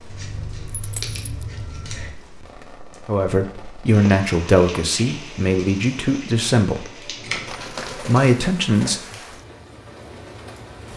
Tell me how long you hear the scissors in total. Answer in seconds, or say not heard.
3 s.